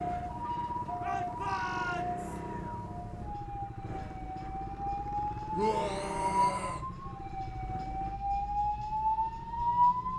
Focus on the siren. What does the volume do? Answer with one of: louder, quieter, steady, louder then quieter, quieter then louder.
quieter then louder.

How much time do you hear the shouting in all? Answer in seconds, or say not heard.
3 s.